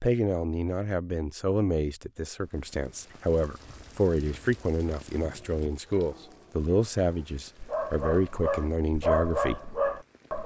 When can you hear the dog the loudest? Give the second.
9 s.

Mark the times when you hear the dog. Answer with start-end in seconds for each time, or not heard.
5.3-10.4.